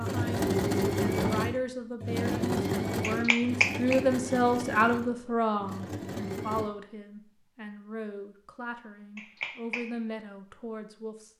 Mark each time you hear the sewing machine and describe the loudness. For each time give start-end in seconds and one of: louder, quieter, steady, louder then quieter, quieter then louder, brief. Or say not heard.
0.0-6.7 quieter.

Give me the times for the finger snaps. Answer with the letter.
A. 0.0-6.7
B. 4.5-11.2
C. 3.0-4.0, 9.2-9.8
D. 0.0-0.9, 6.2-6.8
C.